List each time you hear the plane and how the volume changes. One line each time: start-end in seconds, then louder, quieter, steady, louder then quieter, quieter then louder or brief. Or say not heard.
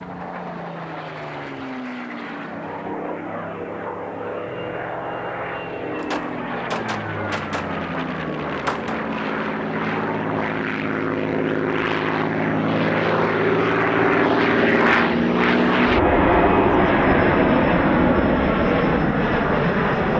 0.0-20.1 louder.